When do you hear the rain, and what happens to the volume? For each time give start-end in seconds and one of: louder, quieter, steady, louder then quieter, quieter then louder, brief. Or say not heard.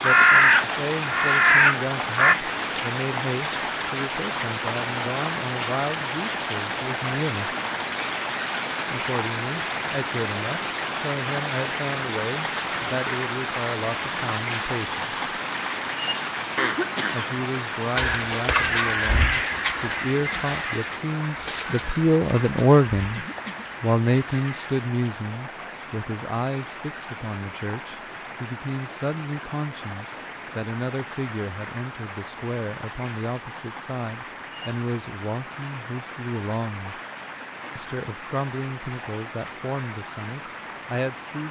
0.0-41.4 quieter.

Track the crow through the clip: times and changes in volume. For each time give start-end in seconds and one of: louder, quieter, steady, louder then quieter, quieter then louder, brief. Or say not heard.
0.0-2.4 brief
17.9-24.8 quieter.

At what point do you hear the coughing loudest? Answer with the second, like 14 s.
17 s.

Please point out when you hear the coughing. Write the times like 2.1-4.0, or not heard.
16.6-17.3, 23.1-23.6.